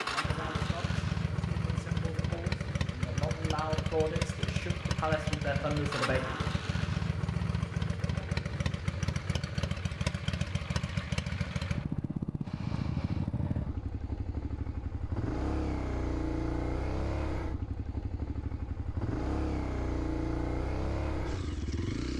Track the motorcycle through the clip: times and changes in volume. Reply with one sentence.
The motorcycle can be heard from 0.0 to 22.1 s, at a steady volume.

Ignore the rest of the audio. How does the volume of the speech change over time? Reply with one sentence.
The volume of the speech goes up.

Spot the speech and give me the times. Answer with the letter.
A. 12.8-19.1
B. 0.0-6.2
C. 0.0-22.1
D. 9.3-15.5
B.